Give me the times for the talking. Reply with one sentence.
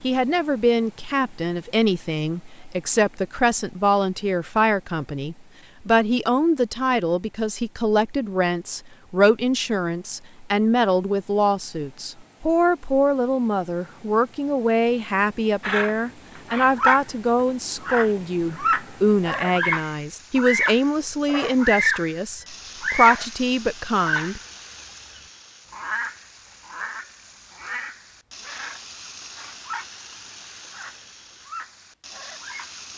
You can hear the talking from 0.0 to 24.4 s.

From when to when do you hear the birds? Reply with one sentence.
The birds can be heard from 15.6 to 17.0 s, from 17.8 to 22.1 s, from 22.8 to 23.3 s and from 23.9 to 32.9 s.